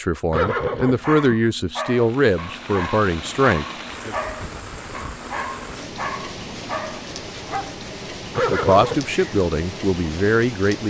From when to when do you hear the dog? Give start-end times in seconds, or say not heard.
0.5-7.8.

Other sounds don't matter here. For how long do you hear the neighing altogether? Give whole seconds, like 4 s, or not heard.
2 s.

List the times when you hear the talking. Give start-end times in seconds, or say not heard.
0.0-4.2, 8.5-10.8.